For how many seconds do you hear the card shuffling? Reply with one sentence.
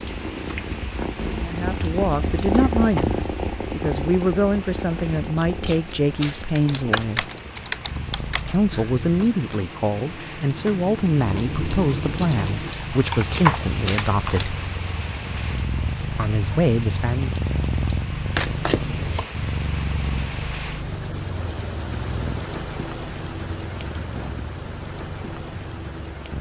The card shuffling can be heard for 4 seconds in total.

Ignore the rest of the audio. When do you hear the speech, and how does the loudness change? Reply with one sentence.
You can hear the speech from 1.4 to 7.3 s, at a steady volume; from 8.4 to 14.6 s, at a steady volume; and briefly from 16.1 to 17.3 s.